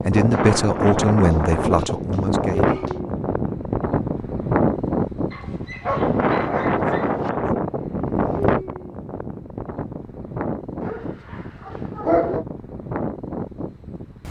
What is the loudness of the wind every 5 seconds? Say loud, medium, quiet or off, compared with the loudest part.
loud, loud, medium.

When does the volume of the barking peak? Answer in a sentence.
The loudest moment of the barking is at 12 seconds.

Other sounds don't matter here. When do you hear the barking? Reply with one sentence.
You can hear the barking from 0.3 to 3.0 s, from 5.3 to 7.3 s and from 10.8 to 12.4 s.